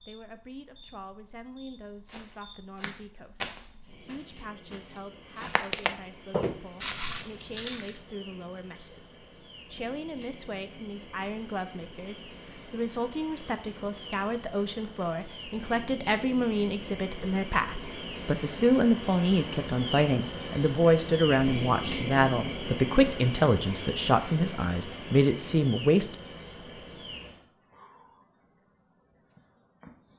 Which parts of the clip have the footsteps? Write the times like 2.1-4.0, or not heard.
2.0-8.0.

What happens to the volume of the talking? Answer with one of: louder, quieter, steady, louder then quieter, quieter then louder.
louder.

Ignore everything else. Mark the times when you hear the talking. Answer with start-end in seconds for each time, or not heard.
0.1-26.1.